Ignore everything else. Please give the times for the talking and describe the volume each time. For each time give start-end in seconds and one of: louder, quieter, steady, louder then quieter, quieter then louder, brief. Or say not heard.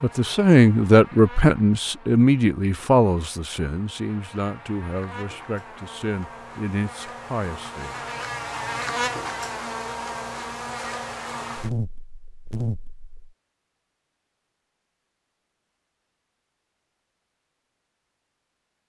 0.0-8.0 quieter.